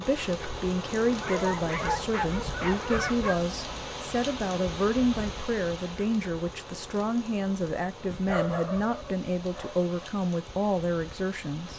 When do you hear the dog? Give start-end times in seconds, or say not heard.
1.2-3.4, 8.1-10.1.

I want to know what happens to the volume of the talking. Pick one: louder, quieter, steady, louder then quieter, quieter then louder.
steady.